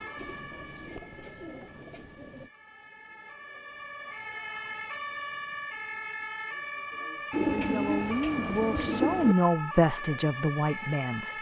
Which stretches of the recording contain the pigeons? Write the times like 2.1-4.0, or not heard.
0.1-2.5, 7.3-9.3.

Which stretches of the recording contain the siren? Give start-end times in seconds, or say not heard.
0.0-11.3.